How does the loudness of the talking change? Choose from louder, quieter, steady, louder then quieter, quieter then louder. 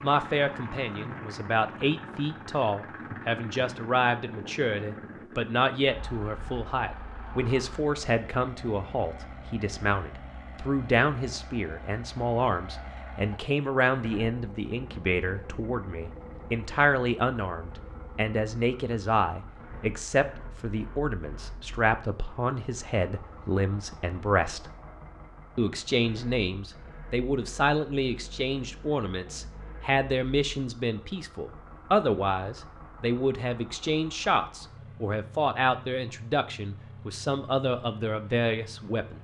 steady.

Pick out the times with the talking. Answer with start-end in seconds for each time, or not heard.
0.0-24.7, 25.6-39.1.